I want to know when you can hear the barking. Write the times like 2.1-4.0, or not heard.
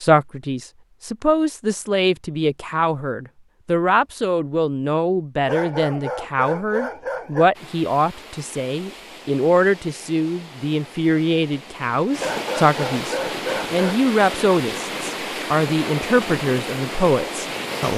5.5-7.5, 12.2-14.0.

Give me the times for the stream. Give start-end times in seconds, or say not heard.
7.5-17.9.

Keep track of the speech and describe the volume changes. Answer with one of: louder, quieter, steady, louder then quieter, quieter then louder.
steady.